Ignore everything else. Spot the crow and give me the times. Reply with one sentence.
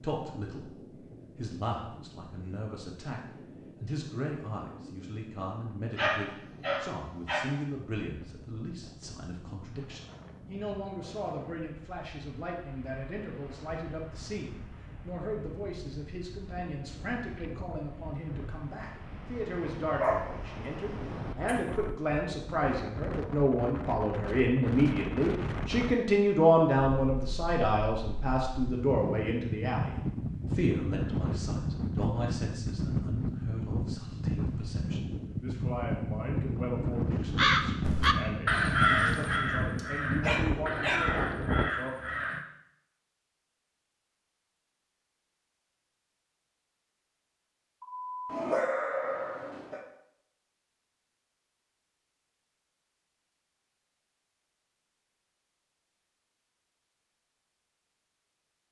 You can hear the crow from 37.1 to 42.5 s.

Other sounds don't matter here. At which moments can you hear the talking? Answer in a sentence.
The talking can be heard from 0.0 to 0.7 s and from 1.4 to 41.9 s.